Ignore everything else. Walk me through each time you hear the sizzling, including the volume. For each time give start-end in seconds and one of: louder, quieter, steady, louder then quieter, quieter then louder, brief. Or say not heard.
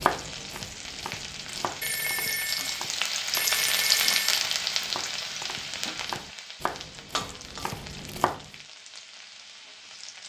0.0-10.2 louder then quieter.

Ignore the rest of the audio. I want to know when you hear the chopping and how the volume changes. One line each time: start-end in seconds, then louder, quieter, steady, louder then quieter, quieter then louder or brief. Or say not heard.
0.0-8.4 quieter then louder.